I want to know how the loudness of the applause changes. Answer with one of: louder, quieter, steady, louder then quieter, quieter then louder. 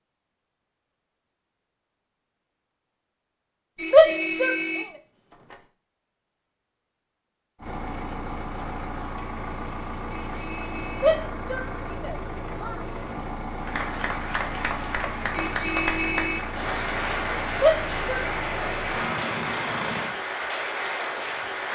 steady.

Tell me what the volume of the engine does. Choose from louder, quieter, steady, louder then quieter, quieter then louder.
steady.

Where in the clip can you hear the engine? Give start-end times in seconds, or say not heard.
7.5-20.1.